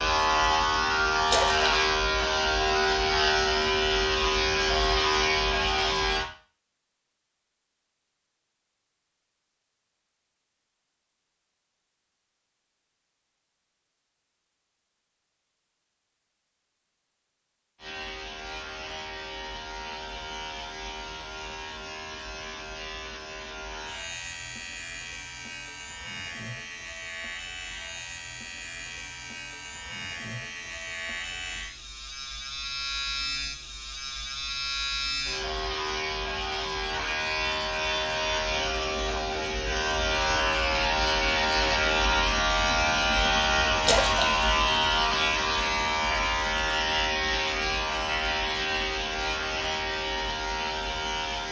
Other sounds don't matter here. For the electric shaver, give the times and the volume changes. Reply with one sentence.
You can hear the electric shaver from 0.0 to 6.2 s, at a steady volume; and from 17.8 to 51.4 s, getting louder.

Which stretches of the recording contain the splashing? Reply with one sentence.
You can hear the splashing from 1.2 to 1.7 s and from 43.8 to 44.3 s.